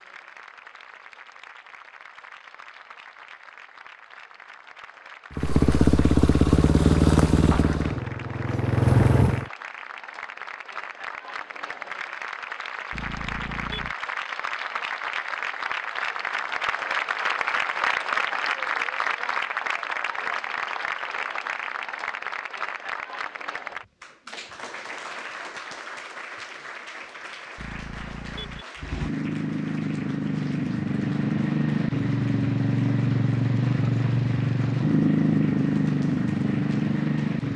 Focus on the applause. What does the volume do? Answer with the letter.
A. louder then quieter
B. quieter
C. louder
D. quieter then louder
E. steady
A.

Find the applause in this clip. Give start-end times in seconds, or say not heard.
0.0-37.5.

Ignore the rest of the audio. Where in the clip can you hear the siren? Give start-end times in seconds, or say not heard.
not heard.